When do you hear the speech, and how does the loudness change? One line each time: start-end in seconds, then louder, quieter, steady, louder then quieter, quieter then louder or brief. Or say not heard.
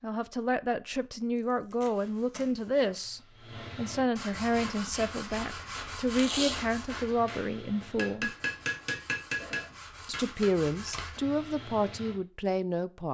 0.0-8.3 steady
10.1-13.0 brief.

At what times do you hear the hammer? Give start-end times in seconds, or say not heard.
4.5-10.9.